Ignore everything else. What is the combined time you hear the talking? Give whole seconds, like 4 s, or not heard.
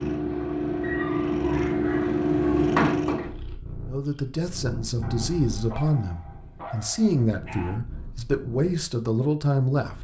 6 s.